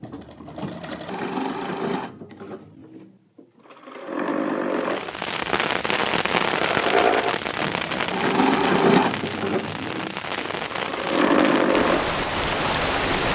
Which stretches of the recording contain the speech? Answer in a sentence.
You can't hear the speech here.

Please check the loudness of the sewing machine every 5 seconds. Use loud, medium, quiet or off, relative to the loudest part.
medium, loud, loud.